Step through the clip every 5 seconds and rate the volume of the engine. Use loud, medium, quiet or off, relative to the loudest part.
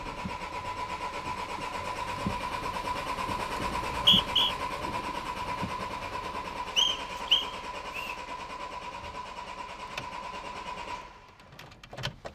loud, loud, medium.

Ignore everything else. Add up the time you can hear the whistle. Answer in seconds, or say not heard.
2 s.